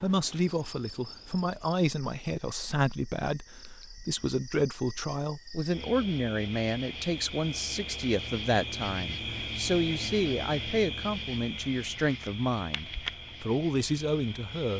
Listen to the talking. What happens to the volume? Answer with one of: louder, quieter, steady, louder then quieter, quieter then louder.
steady.